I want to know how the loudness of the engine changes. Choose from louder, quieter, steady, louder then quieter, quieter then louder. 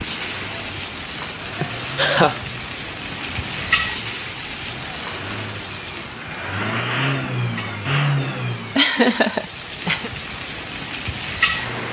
louder.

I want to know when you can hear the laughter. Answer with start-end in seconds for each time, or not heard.
1.6-2.4, 8.8-10.1.